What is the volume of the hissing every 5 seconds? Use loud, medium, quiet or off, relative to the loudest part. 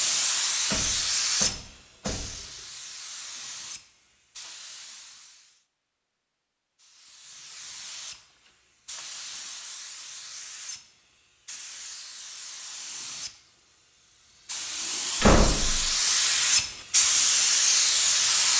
medium, quiet, quiet, loud.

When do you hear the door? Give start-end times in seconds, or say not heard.
0.7-2.5, 15.2-15.9.